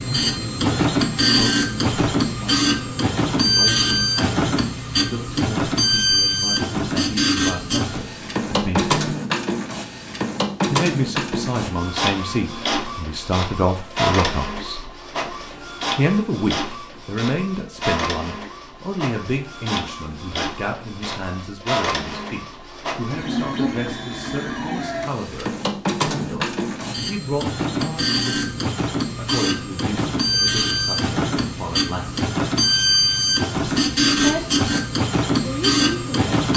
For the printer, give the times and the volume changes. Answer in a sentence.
The printer can be heard from 0.0 to 36.5 s, getting quieter then louder.